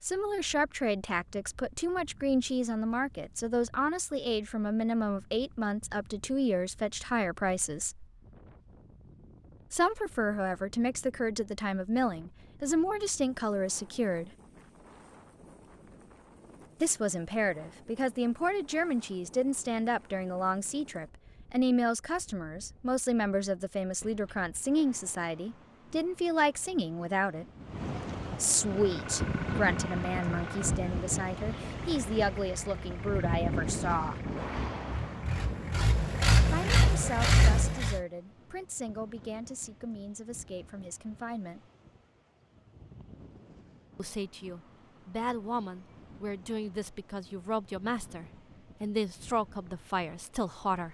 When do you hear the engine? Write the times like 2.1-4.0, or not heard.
28.6-38.0.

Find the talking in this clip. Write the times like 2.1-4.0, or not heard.
0.0-8.1, 9.7-14.3, 16.8-27.4, 28.4-34.2, 36.5-41.6, 44.0-50.8.